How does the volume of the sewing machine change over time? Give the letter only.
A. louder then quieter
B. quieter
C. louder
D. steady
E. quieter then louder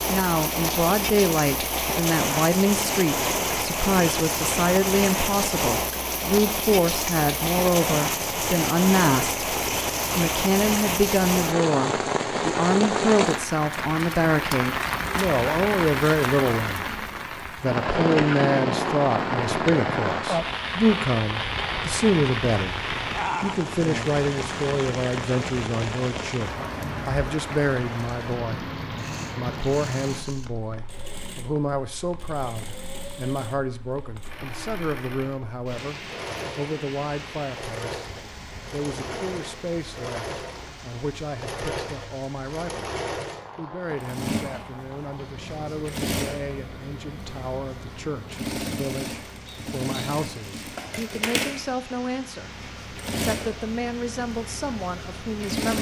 C.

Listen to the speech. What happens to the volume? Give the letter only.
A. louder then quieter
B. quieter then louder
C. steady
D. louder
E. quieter
E.